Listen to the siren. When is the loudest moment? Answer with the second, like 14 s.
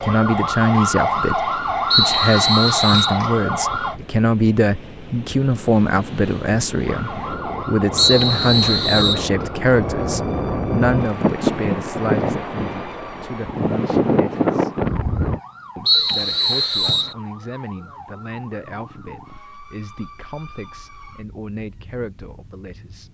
1 s.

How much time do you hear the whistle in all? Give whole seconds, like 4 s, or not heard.
4 s.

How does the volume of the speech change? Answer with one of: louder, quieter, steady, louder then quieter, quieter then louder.
quieter.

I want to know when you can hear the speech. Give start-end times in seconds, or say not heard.
0.0-14.8, 15.8-23.0.